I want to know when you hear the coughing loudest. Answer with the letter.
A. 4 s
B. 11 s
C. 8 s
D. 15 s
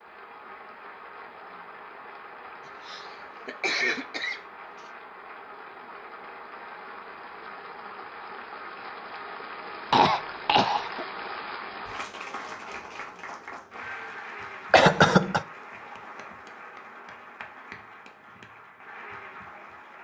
D.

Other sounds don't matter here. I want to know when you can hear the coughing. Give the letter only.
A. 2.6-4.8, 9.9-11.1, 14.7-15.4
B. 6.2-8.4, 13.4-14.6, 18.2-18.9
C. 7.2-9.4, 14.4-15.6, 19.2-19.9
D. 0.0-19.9
A.